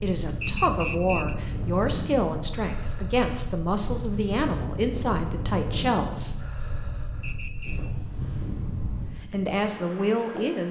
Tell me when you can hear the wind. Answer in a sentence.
The wind can be heard from 0.0 to 10.6 s.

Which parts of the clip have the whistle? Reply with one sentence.
The whistle can be heard from 0.4 to 1.4 s and from 7.2 to 7.8 s.